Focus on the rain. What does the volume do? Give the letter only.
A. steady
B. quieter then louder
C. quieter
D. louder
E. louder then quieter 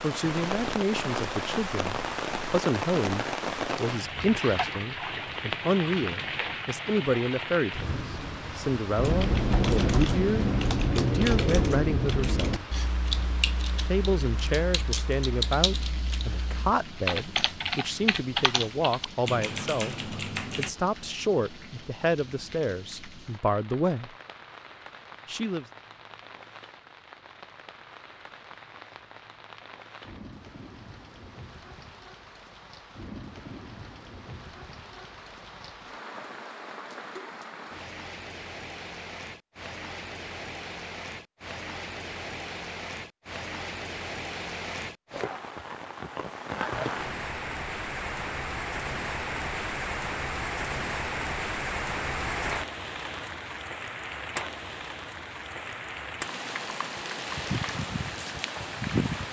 B.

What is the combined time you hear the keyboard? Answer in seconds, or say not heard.
12 s.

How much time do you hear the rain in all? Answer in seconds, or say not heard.
59 s.